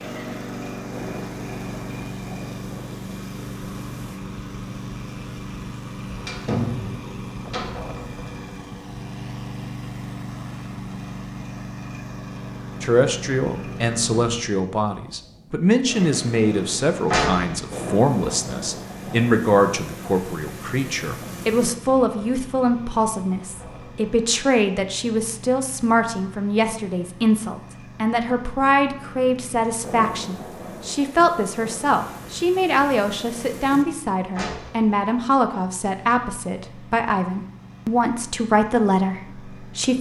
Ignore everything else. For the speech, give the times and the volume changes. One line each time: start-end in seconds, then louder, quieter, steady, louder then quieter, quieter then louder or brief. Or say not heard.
12.8-39.9 steady.